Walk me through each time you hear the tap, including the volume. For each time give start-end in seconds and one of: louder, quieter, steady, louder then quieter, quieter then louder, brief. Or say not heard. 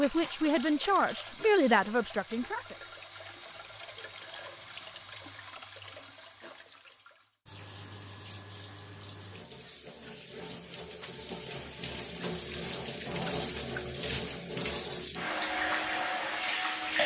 0.0-17.0 louder.